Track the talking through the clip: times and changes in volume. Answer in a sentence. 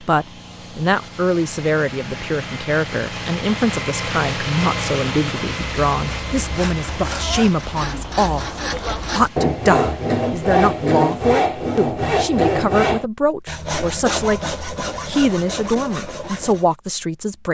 The talking can be heard from 0.0 to 17.4 s, at a steady volume.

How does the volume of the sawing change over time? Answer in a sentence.
The volume of the sawing goes up, then down.